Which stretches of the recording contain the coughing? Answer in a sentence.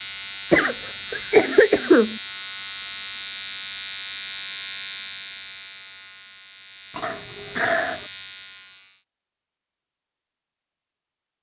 You can hear the coughing from 0.5 to 2.2 s and from 7.0 to 8.1 s.